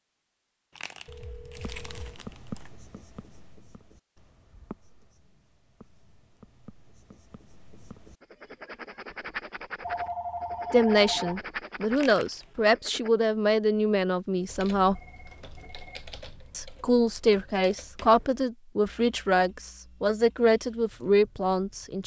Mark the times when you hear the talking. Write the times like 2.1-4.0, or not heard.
10.7-15.0, 16.6-22.0.